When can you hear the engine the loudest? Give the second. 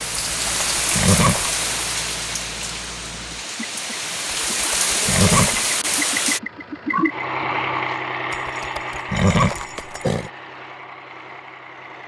7 s.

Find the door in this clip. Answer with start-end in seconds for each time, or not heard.
not heard.